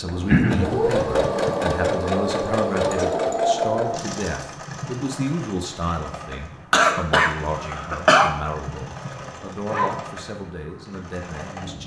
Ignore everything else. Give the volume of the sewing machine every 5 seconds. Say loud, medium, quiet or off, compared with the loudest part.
loud, quiet, quiet.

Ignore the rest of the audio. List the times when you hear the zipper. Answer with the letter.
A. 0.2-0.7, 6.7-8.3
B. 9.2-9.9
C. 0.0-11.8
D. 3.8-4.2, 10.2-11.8
B.